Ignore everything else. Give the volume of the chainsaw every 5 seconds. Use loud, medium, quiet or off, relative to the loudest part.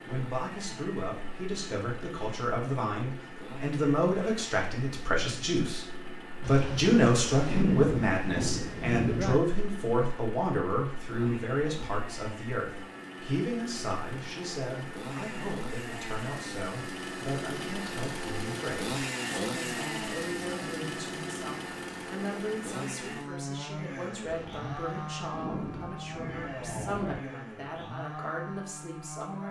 medium, medium, medium, loud, loud, medium.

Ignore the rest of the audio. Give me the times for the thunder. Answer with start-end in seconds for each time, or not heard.
6.4-9.4, 24.2-27.2.